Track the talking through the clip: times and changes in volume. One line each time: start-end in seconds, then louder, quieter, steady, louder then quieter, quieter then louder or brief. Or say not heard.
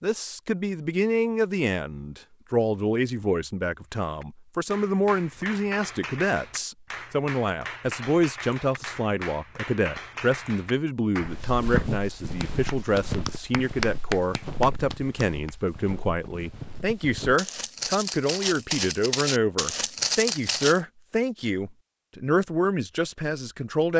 0.0-23.9 steady.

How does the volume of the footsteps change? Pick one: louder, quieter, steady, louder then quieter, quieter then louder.
quieter then louder.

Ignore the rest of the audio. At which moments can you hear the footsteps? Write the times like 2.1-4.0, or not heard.
11.2-20.8.